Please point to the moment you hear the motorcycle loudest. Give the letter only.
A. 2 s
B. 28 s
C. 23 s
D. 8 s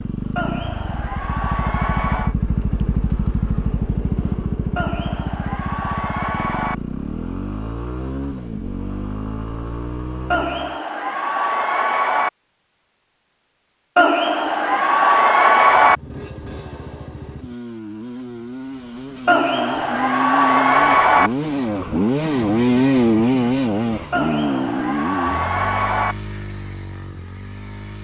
C.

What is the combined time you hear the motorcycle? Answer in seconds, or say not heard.
23 s.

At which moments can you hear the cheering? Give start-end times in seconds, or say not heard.
0.3-2.4, 4.8-6.8, 10.3-12.3, 13.9-15.9, 19.2-21.3, 24.1-26.1.